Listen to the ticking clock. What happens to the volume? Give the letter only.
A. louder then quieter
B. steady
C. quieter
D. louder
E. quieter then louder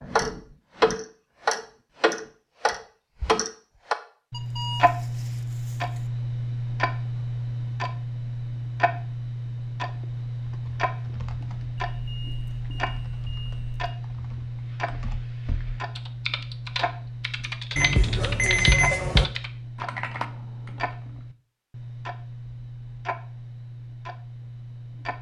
C.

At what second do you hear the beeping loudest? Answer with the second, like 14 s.
19 s.